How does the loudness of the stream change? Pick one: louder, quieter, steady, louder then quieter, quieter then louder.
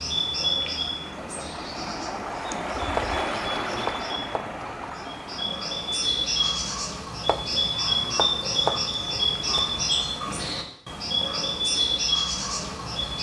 louder then quieter.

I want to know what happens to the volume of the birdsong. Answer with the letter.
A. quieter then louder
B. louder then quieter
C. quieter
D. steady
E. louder
A.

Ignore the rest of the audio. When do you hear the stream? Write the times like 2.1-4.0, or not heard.
0.1-6.8.